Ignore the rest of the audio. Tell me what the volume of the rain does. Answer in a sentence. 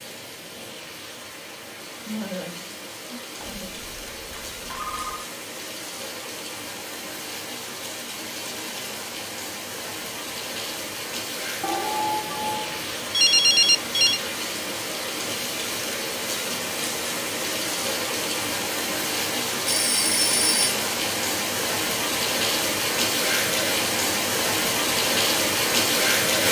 The loudness of the rain goes up.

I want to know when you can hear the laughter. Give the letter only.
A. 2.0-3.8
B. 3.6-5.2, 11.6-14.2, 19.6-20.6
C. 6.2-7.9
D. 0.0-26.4
A.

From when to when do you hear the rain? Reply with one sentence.
The rain can be heard from 0.0 to 26.4 s.